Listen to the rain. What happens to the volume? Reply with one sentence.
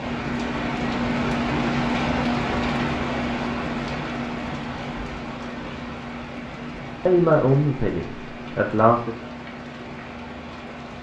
The volume of the rain goes down.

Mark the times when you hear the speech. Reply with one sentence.
You can hear the speech from 7.0 to 9.2 s.